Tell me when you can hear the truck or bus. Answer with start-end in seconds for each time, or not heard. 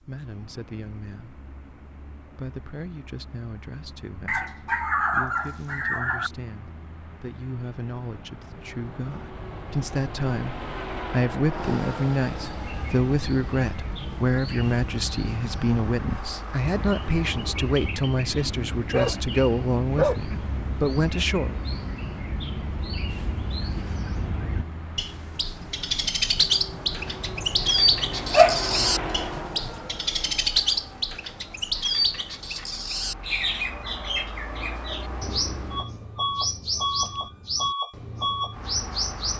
0.0-39.3.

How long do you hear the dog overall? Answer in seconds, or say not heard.
5 s.